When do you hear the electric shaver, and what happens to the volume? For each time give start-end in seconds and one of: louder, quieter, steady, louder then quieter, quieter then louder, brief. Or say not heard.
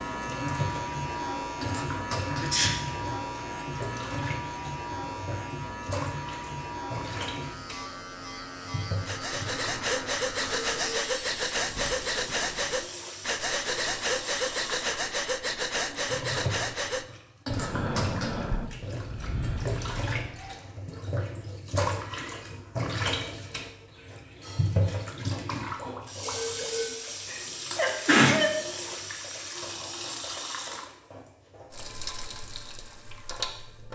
0.0-12.8 quieter.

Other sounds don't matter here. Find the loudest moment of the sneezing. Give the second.
28 s.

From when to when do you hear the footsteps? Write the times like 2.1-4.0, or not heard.
not heard.